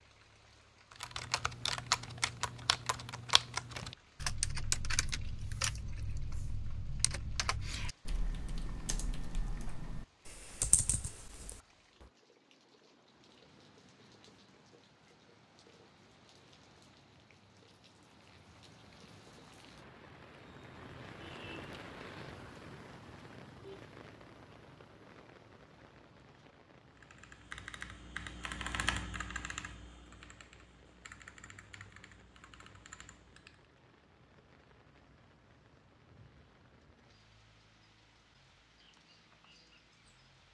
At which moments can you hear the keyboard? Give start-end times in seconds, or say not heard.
0.9-12.1, 26.9-33.7.